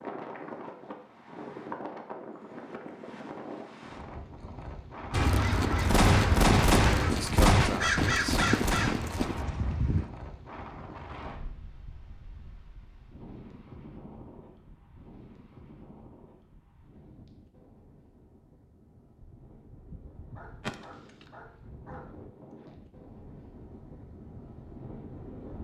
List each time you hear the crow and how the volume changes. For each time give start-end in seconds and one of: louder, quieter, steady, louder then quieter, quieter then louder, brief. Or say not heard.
5.1-10.1 quieter.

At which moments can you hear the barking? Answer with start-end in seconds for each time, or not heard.
20.4-22.1.